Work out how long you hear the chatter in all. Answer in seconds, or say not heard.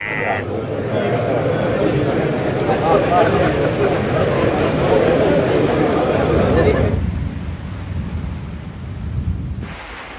7 s.